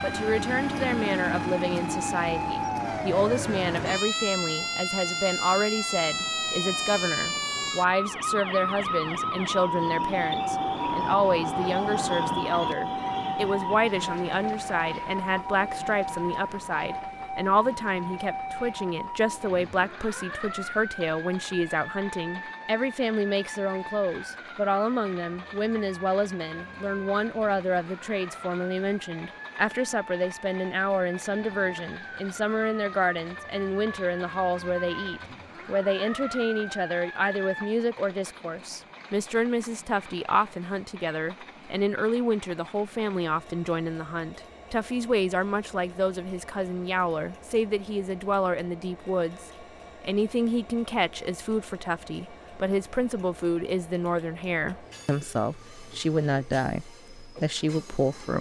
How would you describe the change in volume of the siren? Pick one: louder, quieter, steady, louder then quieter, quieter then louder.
quieter.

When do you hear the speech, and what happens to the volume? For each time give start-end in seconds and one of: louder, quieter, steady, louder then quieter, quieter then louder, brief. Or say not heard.
0.0-58.3 steady.